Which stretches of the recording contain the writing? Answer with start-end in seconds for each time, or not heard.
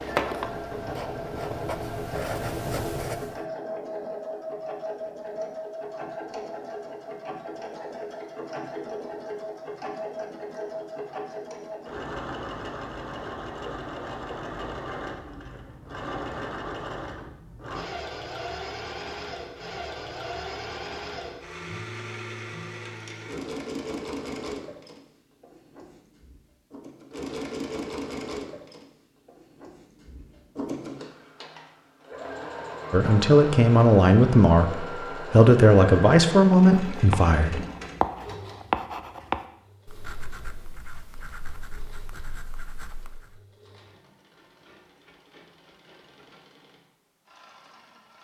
0.0-3.4, 36.8-43.4.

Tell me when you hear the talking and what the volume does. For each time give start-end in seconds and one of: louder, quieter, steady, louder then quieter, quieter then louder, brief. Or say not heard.
32.9-37.6 steady.